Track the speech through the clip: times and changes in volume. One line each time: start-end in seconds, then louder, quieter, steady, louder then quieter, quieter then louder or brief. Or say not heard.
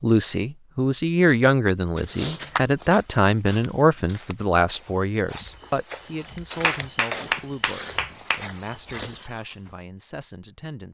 0.0-10.8 quieter.